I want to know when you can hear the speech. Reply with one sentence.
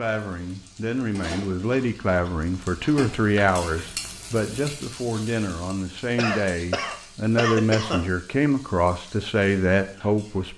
The speech can be heard from 0.0 to 10.5 s.